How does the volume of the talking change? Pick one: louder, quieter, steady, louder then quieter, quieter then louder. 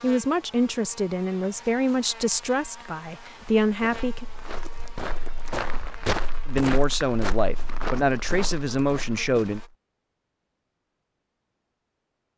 steady.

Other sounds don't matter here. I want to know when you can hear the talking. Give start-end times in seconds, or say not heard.
0.0-4.2, 6.5-9.6.